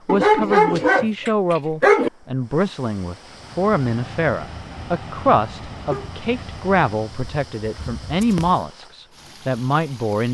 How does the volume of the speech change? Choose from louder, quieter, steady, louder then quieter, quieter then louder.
steady.